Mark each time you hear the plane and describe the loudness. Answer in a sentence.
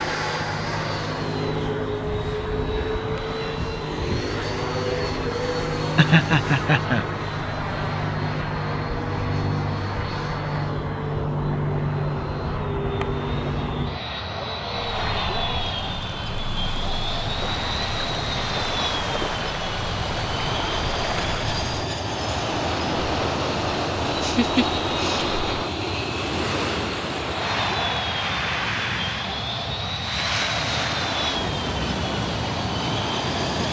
The plane can be heard from 0.0 to 33.6 s, at a steady volume.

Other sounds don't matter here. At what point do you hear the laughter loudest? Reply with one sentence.
The loudest moment of the laughter is at 6 seconds.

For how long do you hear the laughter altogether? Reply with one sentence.
You can hear the laughter for 2 seconds altogether.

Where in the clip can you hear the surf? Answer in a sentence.
You can hear the surf from 14.7 to 33.6 s.